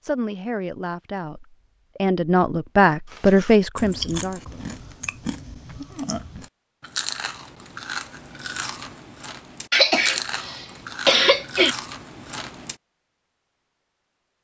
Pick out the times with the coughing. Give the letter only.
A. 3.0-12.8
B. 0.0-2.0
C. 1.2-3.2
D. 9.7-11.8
D.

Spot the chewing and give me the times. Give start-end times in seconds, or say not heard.
3.0-12.8.